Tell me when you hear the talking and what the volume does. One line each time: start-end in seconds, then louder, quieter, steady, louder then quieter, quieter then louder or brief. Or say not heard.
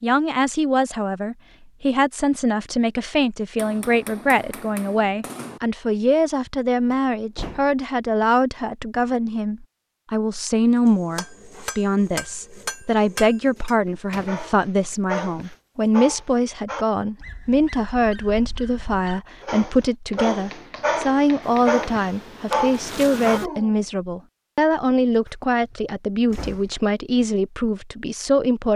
0.0-28.7 steady.